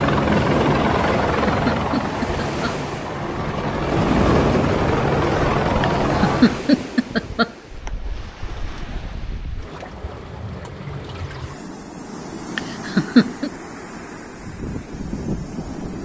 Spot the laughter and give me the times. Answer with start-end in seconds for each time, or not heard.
1.1-2.8, 5.8-7.9, 12.6-13.5.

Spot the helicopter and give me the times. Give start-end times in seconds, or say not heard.
0.0-6.6.